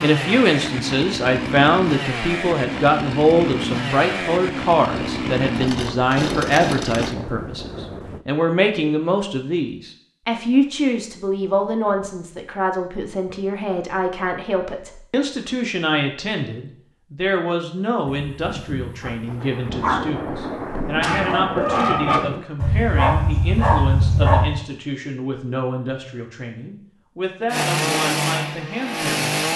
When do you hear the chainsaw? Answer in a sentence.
The chainsaw can be heard from 0.0 to 7.2 s and from 27.5 to 29.5 s.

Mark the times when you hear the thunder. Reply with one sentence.
The thunder can be heard from 5.0 to 8.2 s and from 18.1 to 22.4 s.